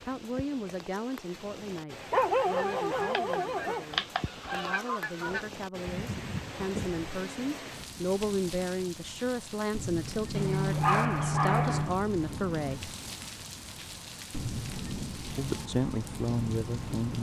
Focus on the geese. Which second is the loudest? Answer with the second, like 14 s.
4 s.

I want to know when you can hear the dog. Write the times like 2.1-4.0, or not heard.
2.1-3.9, 10.3-12.0.